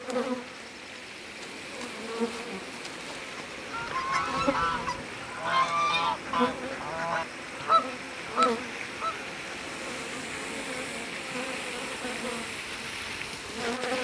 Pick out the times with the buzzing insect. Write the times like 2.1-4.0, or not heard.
0.0-14.0.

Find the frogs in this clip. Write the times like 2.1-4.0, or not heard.
not heard.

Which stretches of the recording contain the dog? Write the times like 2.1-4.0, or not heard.
not heard.